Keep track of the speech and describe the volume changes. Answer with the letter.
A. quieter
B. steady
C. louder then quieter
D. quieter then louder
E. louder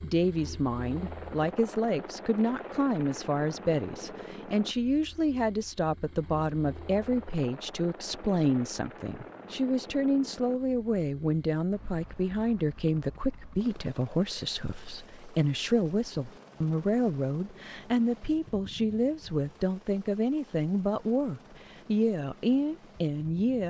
B.